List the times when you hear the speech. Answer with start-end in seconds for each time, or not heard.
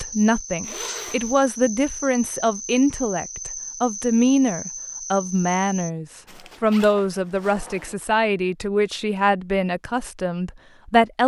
0.0-11.2.